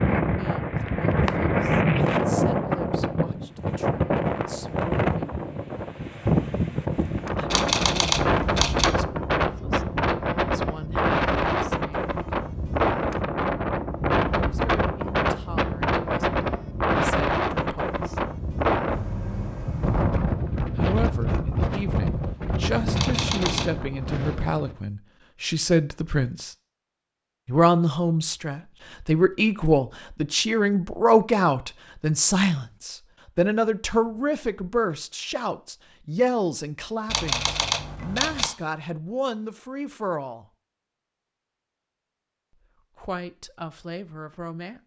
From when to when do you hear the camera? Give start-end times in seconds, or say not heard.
7.5-8.9, 22.9-23.9, 37.0-38.5.